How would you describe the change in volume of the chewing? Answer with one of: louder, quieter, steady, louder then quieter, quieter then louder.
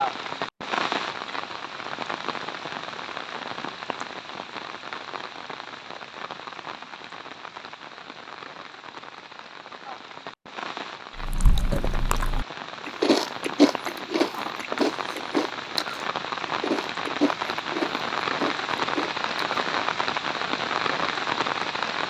louder then quieter.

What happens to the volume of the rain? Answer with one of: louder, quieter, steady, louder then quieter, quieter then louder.
quieter then louder.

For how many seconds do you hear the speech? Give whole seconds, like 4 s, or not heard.
not heard.